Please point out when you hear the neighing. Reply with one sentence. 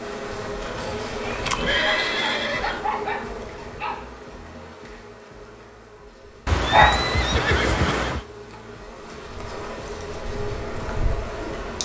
You can hear the neighing from 1.2 to 2.8 s and from 6.5 to 8.2 s.